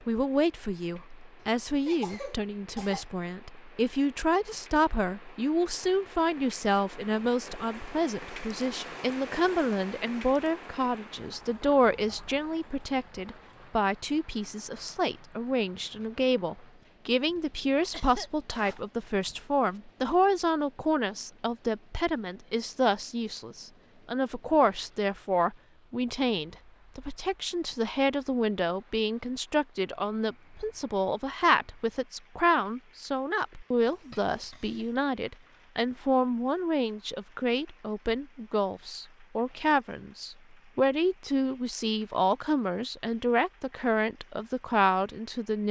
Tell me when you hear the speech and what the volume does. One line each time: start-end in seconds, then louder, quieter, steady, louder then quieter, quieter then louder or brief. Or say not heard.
0.1-45.6 steady.